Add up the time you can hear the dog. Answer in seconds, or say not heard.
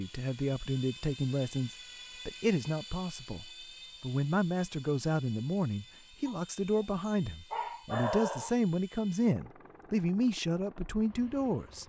2 s.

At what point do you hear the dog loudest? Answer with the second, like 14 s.
8 s.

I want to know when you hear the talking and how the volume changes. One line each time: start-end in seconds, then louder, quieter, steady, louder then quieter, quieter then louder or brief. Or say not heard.
0.0-11.8 steady.